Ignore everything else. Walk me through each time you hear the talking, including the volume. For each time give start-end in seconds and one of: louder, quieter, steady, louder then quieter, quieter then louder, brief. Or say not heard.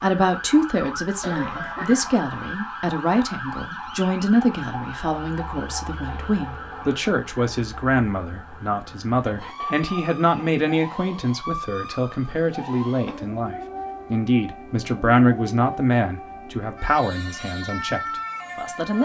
0.0-19.0 steady.